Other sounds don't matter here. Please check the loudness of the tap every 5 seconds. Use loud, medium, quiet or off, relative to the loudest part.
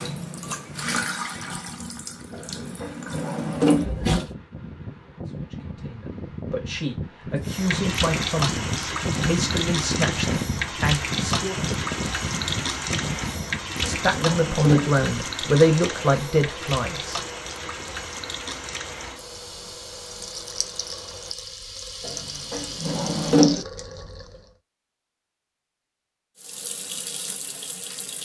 loud, loud, loud, medium, medium, medium.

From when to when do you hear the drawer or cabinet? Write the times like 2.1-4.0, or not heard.
2.3-3.9, 13.3-14.9, 22.0-23.6.